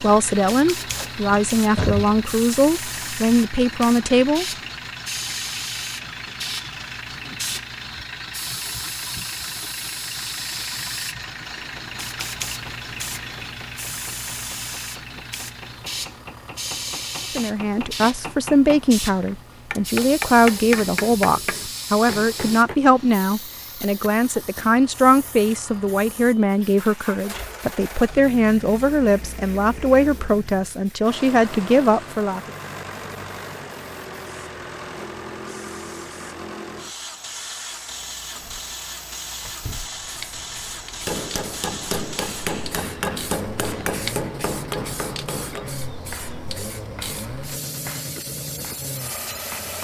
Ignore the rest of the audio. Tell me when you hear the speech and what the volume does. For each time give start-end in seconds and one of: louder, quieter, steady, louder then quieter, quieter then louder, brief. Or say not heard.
0.0-4.5 steady
17.4-32.5 steady.